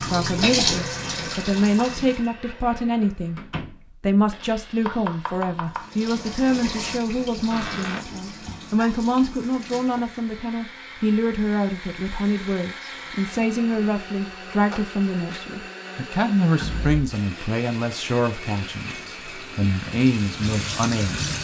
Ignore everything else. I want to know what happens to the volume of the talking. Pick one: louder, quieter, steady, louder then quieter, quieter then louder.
steady.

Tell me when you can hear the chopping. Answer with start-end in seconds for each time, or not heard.
4.4-5.9.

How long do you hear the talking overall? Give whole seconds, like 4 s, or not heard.
21 s.